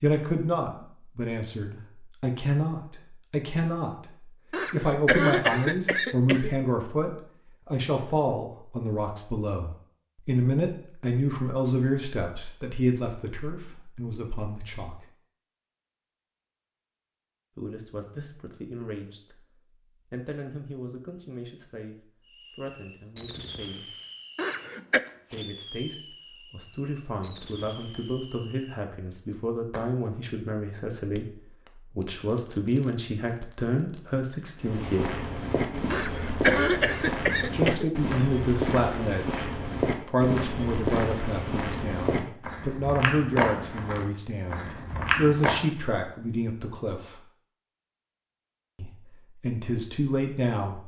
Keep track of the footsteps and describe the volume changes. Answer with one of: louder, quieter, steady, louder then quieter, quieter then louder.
steady.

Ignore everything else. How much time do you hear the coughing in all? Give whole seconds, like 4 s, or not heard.
5 s.